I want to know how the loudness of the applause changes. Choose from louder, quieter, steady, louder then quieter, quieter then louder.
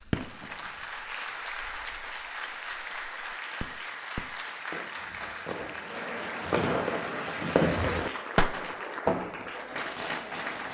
steady.